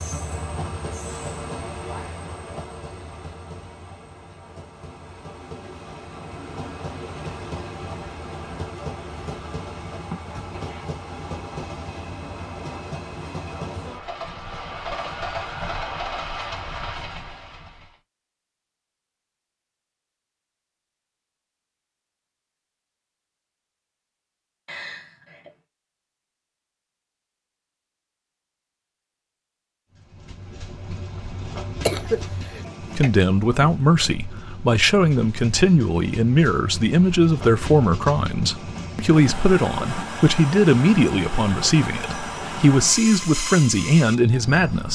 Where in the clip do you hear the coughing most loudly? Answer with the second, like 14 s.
32 s.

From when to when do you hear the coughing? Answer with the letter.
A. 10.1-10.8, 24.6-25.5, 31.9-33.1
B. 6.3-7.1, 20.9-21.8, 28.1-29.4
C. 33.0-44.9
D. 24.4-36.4
A.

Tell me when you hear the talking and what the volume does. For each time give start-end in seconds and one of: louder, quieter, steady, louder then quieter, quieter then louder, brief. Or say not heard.
33.0-44.9 steady.